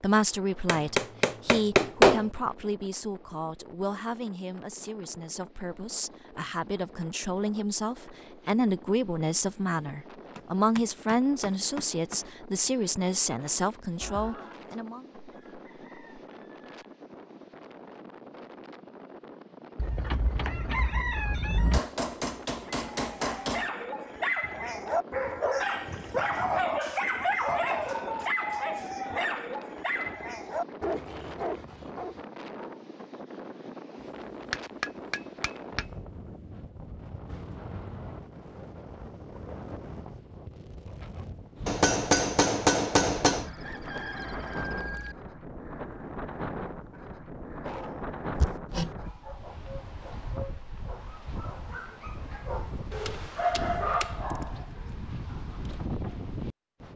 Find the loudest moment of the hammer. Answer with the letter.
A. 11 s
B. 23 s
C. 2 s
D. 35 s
C.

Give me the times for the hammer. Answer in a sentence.
You can hear the hammer from 0.7 to 2.3 s, from 10.3 to 12.2 s, from 21.7 to 23.7 s, from 34.5 to 35.9 s, from 41.6 to 43.5 s and from 48.4 to 48.9 s.